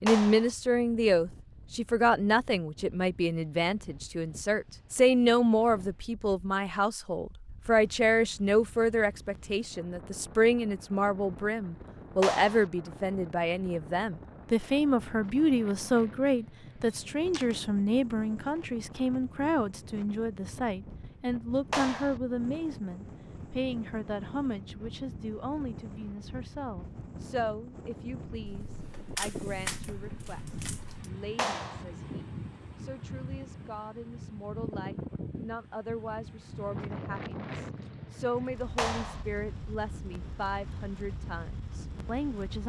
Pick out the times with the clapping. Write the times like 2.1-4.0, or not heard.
0.1-0.5, 12.2-12.7, 21.7-22.2, 31.4-31.9, 38.8-39.2.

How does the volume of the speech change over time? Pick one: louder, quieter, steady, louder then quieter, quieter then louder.
quieter.